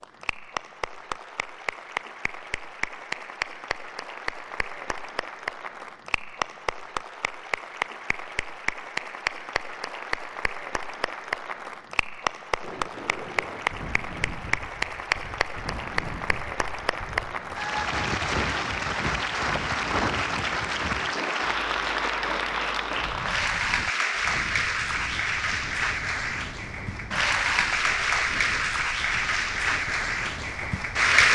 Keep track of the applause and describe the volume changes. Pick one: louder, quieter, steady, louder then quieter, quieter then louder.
louder.